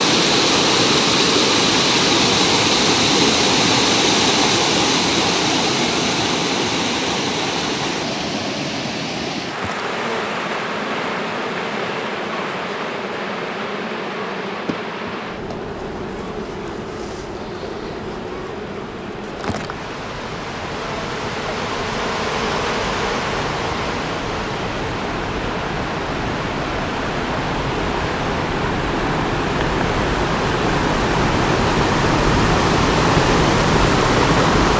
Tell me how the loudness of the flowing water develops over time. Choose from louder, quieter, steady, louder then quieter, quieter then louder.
quieter then louder.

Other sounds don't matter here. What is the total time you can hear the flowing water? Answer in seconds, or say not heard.
35 s.